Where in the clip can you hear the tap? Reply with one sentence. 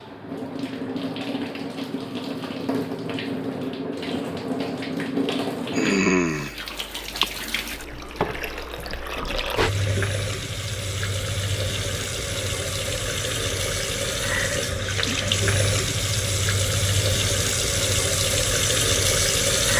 The tap can be heard from 0.0 to 19.7 s.